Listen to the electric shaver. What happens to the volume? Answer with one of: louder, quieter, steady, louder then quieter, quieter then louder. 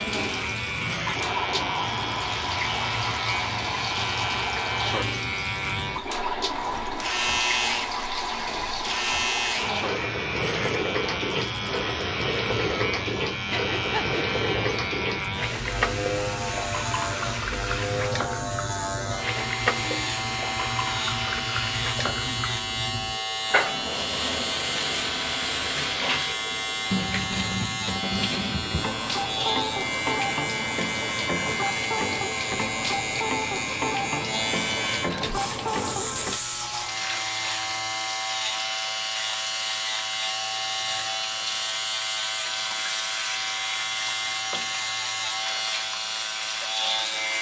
steady.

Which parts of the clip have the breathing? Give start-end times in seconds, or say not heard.
13.5-14.2.